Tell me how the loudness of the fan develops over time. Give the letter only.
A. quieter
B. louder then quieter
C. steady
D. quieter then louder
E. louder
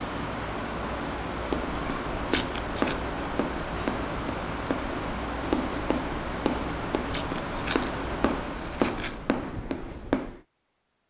C.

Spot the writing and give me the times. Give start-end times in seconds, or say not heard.
1.4-10.4.